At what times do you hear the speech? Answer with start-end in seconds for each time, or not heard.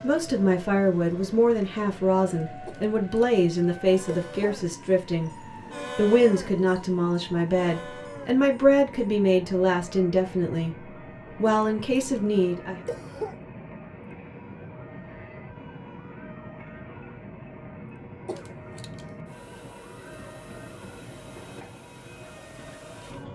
0.0-10.8, 11.3-12.8.